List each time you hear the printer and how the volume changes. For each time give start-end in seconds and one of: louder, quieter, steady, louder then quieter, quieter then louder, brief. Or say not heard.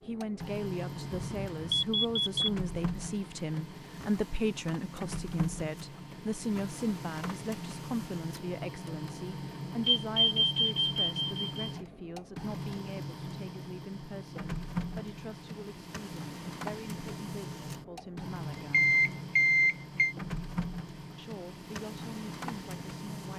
0.0-23.3 steady.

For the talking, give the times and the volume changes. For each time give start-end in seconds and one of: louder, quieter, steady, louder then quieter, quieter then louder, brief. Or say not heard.
0.0-18.9 quieter
21.1-23.3 brief.